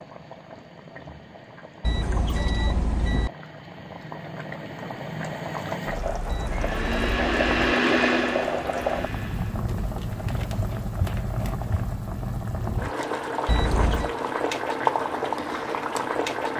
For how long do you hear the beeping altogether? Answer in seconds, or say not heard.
4 s.